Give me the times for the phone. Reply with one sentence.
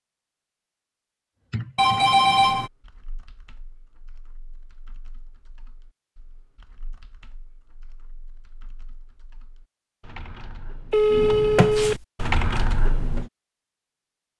The phone can be heard from 1.8 to 2.7 s and from 10.9 to 12.1 s.